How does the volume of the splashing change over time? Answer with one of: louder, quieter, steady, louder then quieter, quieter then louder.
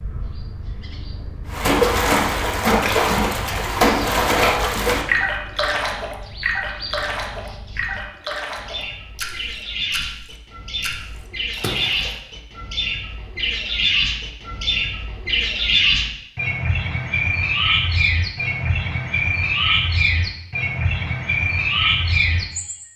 quieter.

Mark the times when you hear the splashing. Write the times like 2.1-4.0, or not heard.
1.5-12.2.